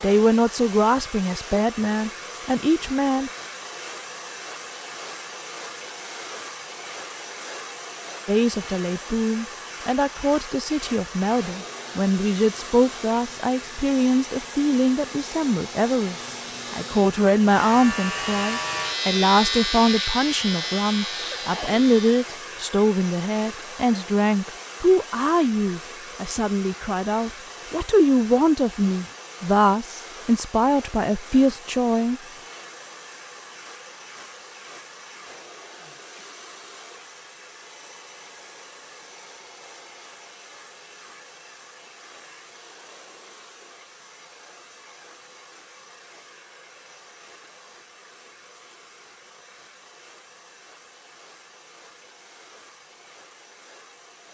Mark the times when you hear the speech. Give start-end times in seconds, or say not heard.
0.0-3.3, 8.2-32.2.